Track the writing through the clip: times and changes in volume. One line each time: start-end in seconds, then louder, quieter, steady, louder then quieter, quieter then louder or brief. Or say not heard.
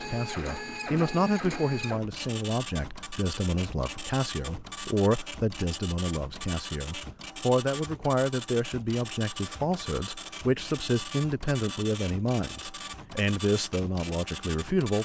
not heard.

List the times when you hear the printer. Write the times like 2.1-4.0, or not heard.
0.0-15.0.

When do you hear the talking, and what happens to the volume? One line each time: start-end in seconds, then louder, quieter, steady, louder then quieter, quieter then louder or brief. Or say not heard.
0.0-15.0 steady.